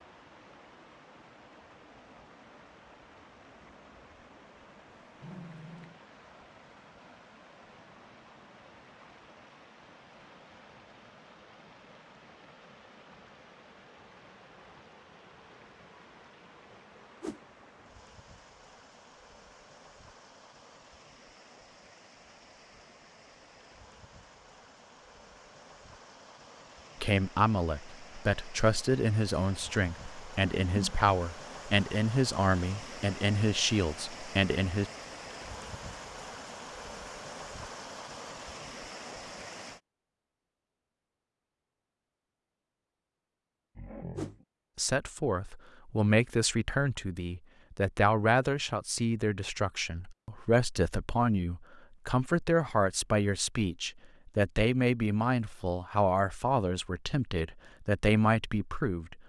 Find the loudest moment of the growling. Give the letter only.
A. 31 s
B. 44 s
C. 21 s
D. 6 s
B.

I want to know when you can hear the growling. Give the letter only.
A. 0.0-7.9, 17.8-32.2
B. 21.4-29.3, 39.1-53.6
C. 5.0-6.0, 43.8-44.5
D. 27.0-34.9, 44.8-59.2
C.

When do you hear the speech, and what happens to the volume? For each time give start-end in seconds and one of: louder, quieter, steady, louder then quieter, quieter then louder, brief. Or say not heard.
27.0-34.9 steady
44.8-59.2 steady.